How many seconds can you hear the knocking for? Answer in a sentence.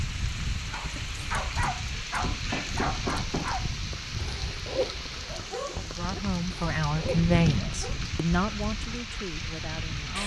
The knocking can be heard for 2 seconds in total.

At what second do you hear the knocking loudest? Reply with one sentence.
The volume of the knocking peaks at 3 seconds.